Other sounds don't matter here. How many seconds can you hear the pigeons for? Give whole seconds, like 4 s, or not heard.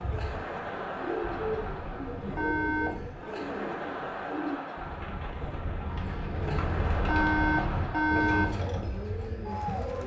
10 s.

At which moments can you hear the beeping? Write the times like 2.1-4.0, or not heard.
1.2-3.3, 6.0-8.6.